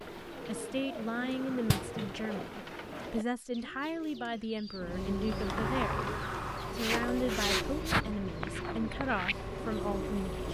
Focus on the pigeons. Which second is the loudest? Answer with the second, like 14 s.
8 s.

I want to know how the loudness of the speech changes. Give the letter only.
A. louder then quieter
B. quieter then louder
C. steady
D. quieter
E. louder
C.